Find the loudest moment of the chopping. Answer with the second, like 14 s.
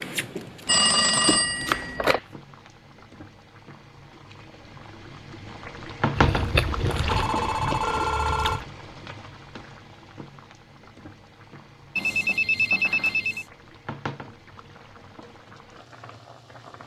2 s.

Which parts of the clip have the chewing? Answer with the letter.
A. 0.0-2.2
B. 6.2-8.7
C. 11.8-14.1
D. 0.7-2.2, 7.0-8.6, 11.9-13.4
B.